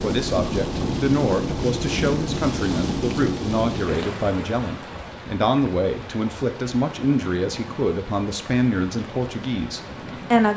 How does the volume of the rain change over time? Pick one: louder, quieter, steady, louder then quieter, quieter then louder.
quieter.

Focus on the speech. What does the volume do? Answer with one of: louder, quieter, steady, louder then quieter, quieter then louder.
steady.